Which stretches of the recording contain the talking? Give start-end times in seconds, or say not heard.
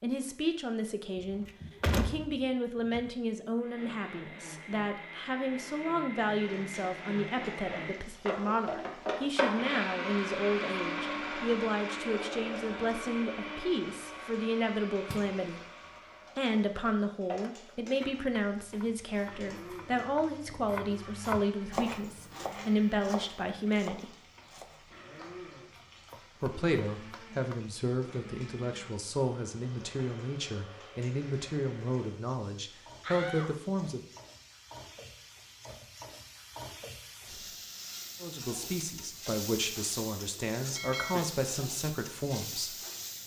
0.0-15.6, 16.4-24.1, 26.4-34.0, 38.2-42.8.